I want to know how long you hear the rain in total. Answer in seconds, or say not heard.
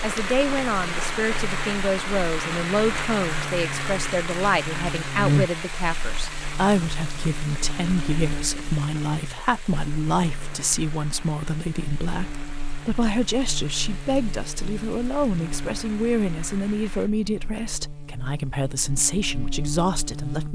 17 s.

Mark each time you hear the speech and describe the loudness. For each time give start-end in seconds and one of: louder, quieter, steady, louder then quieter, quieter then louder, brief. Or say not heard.
0.0-20.5 steady.